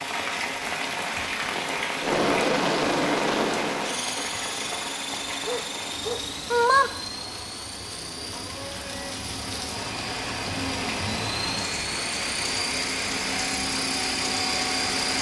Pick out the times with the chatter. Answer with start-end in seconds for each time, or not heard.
not heard.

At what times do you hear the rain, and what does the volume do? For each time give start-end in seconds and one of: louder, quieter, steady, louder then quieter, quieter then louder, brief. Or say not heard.
0.0-15.1 quieter then louder.